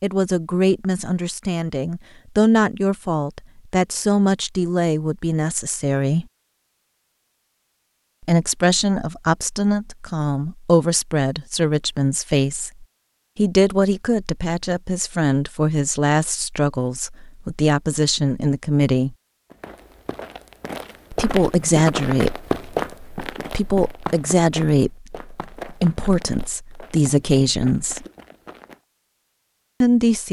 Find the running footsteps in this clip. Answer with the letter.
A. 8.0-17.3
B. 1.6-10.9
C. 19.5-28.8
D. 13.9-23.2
C.